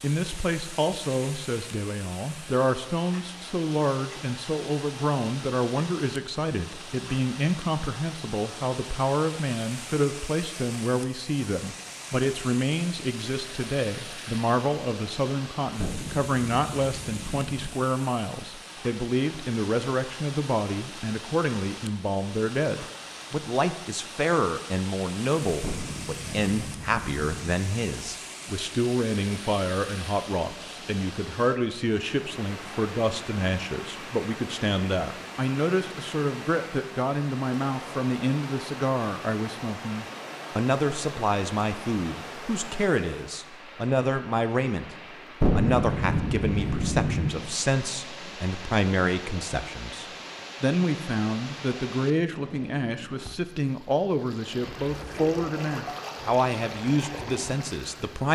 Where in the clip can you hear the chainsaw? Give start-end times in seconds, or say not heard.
not heard.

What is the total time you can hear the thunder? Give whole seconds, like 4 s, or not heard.
6 s.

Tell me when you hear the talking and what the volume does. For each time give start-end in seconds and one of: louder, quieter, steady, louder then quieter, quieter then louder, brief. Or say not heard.
0.0-58.3 steady.